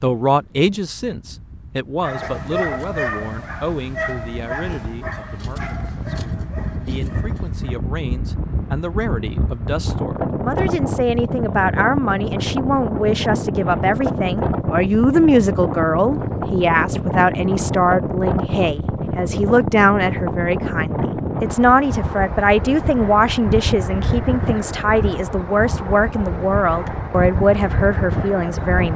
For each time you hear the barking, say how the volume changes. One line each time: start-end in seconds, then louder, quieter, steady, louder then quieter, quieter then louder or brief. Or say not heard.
2.0-7.8 quieter.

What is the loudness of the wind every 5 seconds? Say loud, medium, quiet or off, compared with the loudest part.
quiet, medium, loud, loud, loud, loud.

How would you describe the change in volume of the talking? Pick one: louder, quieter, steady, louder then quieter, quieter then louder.
louder.